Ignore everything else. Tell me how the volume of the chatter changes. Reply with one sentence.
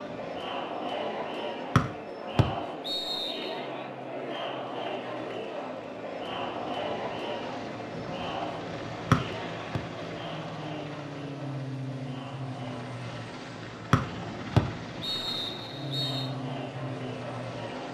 The volume of the chatter goes down.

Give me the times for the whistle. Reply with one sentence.
You can hear the whistle from 1.8 to 3.5 s, from 9.1 to 9.8 s and from 13.9 to 16.3 s.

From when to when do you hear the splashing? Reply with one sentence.
You can't hear the splashing here.